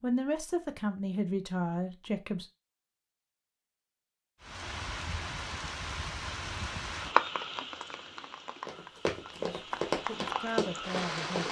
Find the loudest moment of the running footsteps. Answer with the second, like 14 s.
10 s.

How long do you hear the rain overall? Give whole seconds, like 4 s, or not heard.
7 s.